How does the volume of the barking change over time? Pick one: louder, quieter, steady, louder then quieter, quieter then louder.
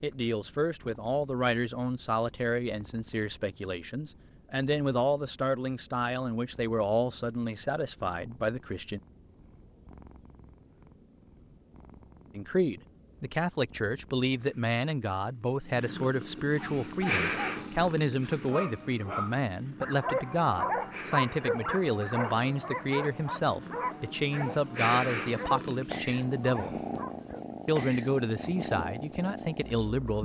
louder then quieter.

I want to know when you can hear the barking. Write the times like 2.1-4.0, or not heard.
16.5-27.4.